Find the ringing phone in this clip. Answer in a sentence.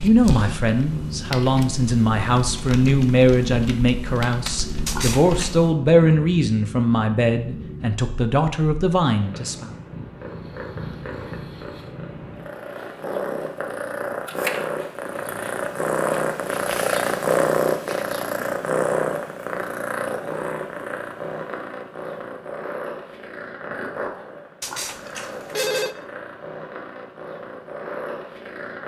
The ringing phone can be heard from 4.8 to 5.6 s and from 24.6 to 25.9 s.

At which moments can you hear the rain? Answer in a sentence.
The rain can't be heard in this clip.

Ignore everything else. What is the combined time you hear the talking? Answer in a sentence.
The talking can be heard for 10 seconds in total.